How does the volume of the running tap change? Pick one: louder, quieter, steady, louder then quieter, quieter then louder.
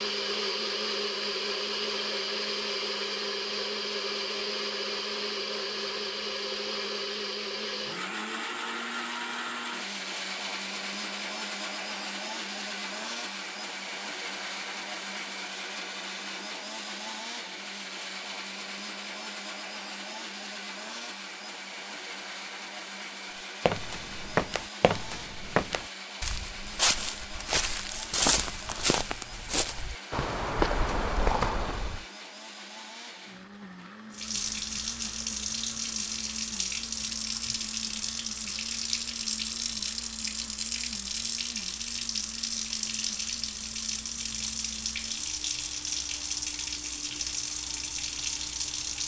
steady.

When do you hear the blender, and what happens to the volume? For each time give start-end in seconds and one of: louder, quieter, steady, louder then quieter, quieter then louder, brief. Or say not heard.
0.0-49.0 quieter.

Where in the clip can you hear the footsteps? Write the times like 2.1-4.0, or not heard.
23.6-32.0.